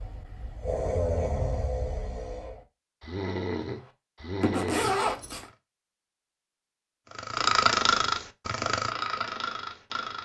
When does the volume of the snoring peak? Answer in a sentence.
The loudest moment of the snoring is at 8 seconds.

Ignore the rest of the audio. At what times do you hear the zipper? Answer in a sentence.
The zipper can be heard from 4.4 to 5.5 s.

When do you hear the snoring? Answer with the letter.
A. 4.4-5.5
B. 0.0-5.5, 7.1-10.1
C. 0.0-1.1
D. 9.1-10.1
B.